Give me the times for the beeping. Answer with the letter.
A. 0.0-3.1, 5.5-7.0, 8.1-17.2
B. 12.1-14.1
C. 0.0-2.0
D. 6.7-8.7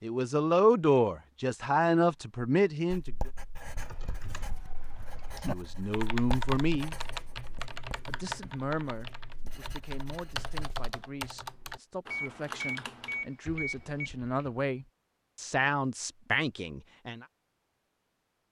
B.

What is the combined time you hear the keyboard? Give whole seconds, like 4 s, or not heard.
11 s.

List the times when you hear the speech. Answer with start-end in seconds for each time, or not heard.
0.0-3.1, 5.5-7.0, 8.1-17.2.